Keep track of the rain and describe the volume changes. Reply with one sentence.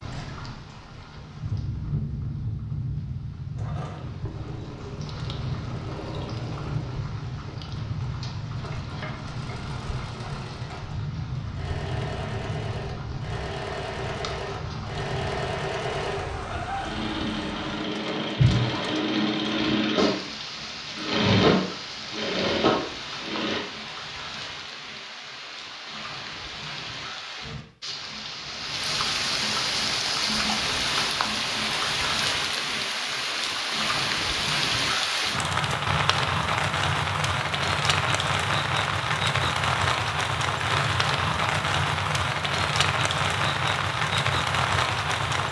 The volume of the rain goes up.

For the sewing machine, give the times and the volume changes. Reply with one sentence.
The sewing machine can be heard from 3.5 to 23.6 s, getting louder.